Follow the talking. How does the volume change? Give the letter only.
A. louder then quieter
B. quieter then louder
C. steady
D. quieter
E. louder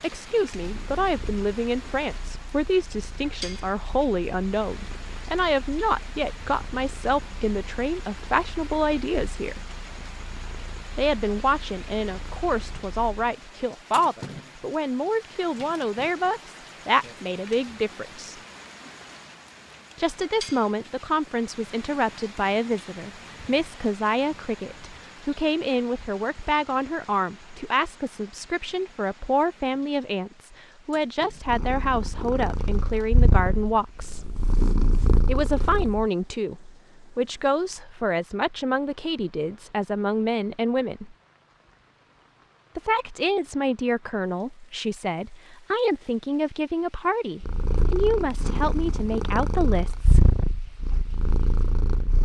C.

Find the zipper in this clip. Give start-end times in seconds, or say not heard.
not heard.